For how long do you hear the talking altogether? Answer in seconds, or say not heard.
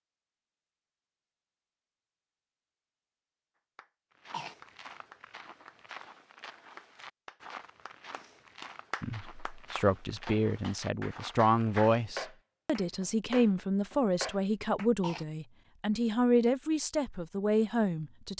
9 s.